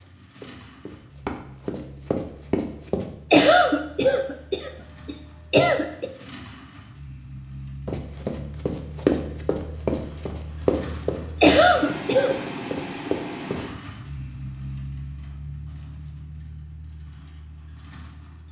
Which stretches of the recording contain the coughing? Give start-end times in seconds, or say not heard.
3.3-6.1, 11.4-12.4.